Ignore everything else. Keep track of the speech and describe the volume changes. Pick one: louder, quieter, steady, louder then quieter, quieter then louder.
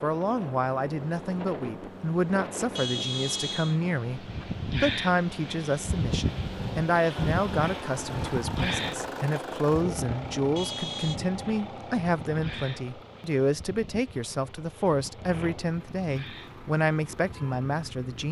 steady.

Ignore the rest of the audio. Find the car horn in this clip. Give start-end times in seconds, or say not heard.
2.8-3.8, 10.6-11.2.